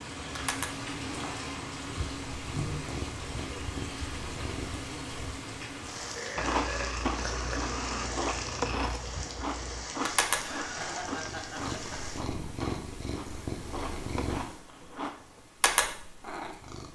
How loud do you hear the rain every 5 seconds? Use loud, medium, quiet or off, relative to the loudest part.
loud, loud, loud, off.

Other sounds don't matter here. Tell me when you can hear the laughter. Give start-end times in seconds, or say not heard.
10.3-12.0.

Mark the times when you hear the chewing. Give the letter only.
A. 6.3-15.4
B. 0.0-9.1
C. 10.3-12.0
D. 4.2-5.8
A.